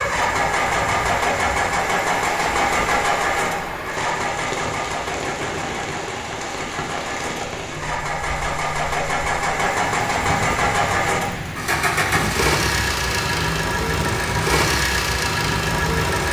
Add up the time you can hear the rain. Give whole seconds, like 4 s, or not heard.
16 s.